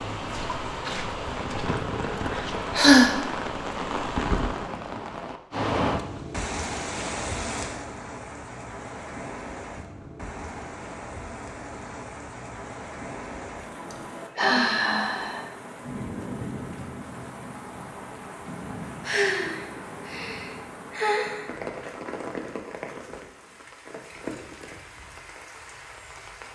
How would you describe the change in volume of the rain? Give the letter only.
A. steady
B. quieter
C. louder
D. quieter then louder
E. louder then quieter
B.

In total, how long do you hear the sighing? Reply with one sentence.
The sighing can be heard for 5 seconds in total.